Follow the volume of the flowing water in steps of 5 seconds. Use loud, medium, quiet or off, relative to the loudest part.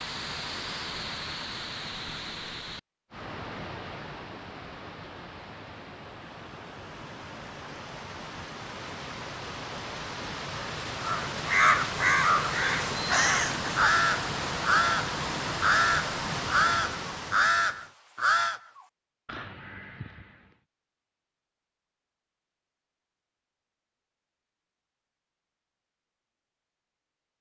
medium, medium, loud, loud, off, off.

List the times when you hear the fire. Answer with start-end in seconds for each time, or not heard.
not heard.